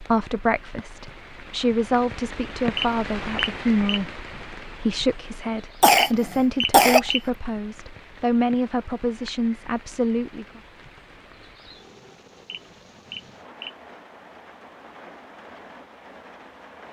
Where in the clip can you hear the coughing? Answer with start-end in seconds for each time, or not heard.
5.8-7.1.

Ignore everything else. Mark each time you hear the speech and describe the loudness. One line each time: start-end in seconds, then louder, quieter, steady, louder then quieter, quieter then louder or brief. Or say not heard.
0.0-10.6 steady.